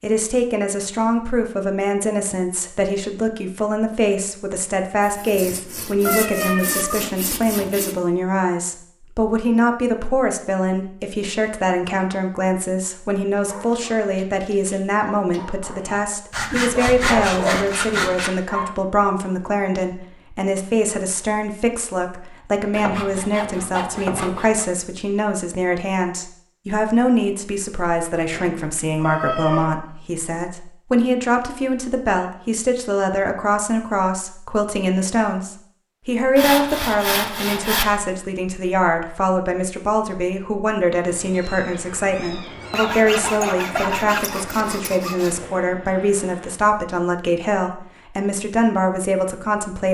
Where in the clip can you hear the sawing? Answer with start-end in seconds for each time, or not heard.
5.0-8.0, 16.3-18.3, 22.7-24.6, 36.4-38.0, 42.8-45.4.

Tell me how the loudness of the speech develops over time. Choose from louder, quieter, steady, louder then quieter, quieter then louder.
steady.